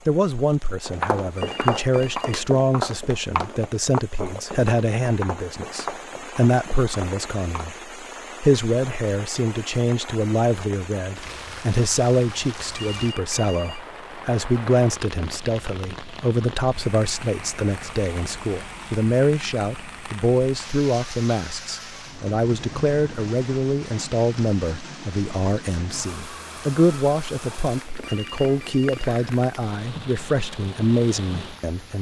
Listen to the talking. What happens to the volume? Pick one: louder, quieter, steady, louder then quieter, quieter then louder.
steady.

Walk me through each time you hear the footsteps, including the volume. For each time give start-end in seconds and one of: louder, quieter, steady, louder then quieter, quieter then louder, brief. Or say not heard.
0.8-7.8 quieter.